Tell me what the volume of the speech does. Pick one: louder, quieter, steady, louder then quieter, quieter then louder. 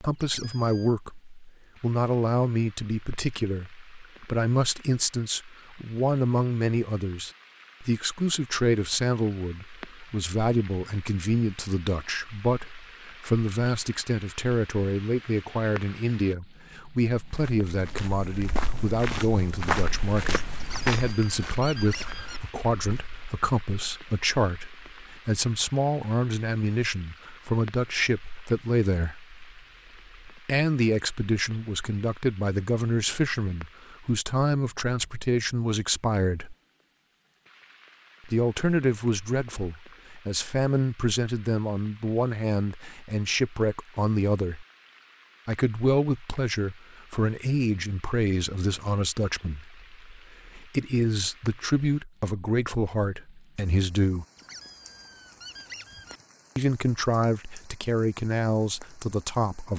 steady.